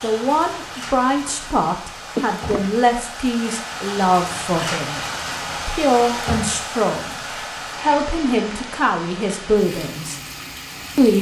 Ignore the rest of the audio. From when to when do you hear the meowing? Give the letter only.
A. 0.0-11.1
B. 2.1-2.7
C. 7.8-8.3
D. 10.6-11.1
B.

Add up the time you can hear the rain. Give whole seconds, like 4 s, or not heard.
11 s.